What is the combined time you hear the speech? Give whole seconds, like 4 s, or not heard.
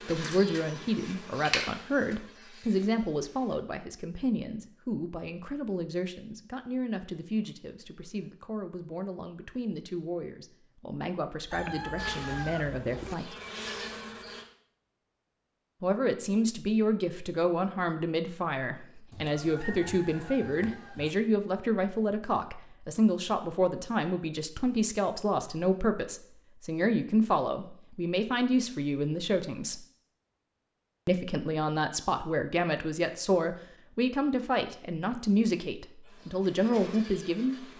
34 s.